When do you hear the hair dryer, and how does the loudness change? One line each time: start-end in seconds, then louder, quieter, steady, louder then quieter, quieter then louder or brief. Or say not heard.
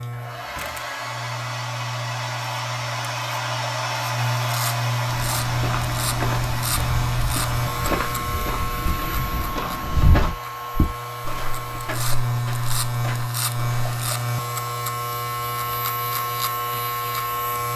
0.0-17.6 quieter.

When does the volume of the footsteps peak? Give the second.
10 s.